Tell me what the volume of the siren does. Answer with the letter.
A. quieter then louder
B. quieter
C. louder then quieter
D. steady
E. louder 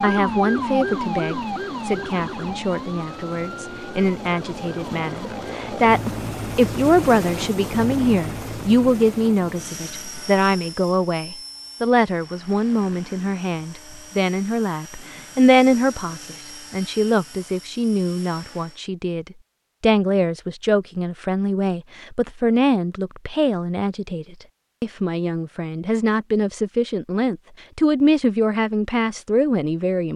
B.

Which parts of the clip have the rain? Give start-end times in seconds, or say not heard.
not heard.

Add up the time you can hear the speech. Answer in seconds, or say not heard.
30 s.